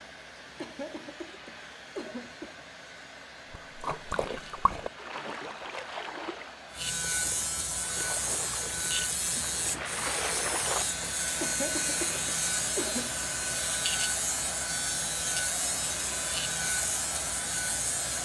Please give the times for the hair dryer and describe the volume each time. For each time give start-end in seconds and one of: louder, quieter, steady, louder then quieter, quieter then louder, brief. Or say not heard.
0.0-18.2 louder.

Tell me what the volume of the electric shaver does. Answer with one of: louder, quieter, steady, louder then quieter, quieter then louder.
louder.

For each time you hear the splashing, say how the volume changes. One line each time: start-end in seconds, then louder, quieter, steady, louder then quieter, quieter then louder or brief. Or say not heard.
3.5-11.1 quieter then louder.